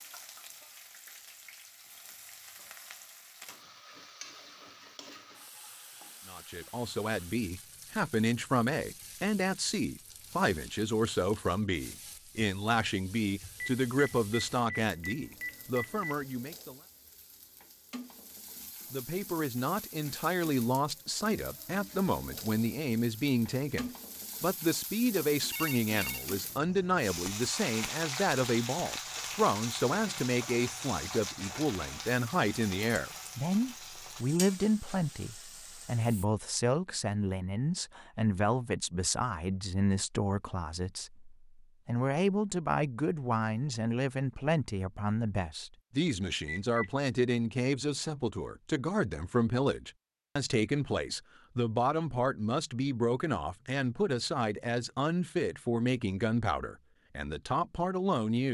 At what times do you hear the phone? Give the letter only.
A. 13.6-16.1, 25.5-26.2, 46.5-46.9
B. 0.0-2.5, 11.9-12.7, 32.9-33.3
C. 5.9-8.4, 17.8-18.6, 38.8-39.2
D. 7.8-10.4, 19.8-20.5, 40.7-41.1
A.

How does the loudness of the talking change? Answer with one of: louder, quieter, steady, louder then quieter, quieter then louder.
steady.